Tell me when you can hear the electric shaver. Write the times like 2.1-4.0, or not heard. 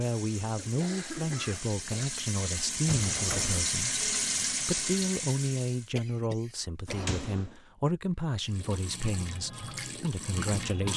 not heard.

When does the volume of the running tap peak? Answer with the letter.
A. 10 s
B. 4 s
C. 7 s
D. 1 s
B.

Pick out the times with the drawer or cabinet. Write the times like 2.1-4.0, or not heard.
2.9-3.7, 6.8-7.5.